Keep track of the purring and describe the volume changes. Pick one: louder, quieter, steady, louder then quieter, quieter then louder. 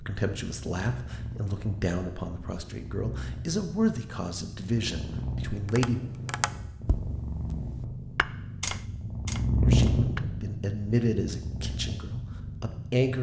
louder then quieter.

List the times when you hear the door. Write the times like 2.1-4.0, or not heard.
not heard.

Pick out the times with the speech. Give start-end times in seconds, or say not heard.
0.0-6.0, 9.6-13.1.